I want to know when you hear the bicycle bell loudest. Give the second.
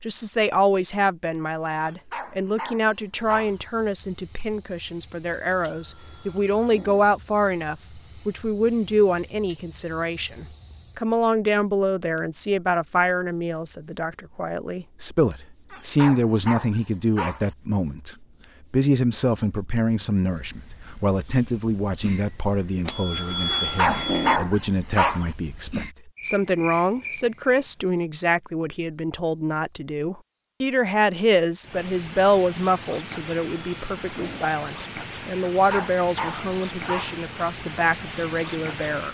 23 s.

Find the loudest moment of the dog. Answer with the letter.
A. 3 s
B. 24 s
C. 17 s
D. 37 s
B.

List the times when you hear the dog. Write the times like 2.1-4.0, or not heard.
1.8-3.6, 15.7-17.5, 23.5-25.3, 35.5-37.2.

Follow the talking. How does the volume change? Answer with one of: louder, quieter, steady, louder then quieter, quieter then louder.
steady.